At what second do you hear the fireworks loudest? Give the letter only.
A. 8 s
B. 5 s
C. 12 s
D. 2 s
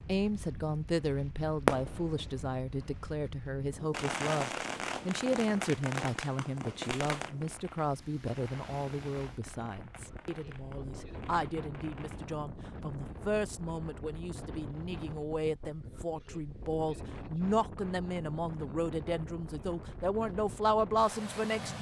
D.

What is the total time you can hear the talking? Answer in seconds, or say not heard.
22 s.